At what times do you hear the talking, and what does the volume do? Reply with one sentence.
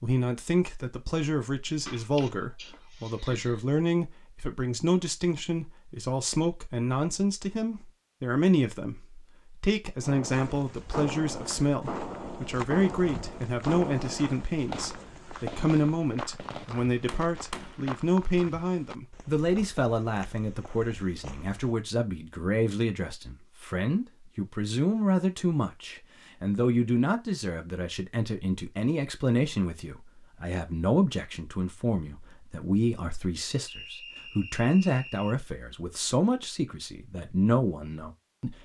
You can hear the talking from 0.0 to 38.5 s, at a steady volume.